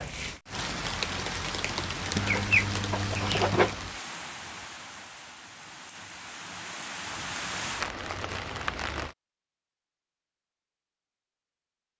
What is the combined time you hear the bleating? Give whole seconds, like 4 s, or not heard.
not heard.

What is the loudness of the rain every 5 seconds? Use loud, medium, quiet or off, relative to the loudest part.
loud, loud, off.